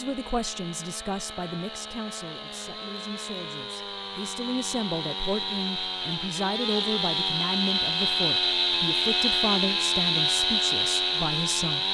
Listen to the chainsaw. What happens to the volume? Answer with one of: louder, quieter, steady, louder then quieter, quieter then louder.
louder.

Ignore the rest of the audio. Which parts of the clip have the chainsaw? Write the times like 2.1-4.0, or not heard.
0.0-11.8.